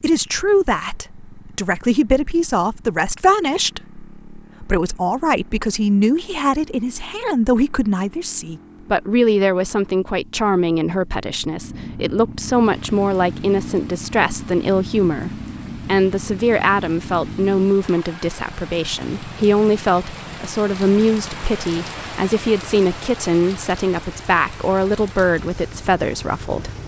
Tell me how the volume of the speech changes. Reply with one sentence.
The loudness of the speech stays about the same.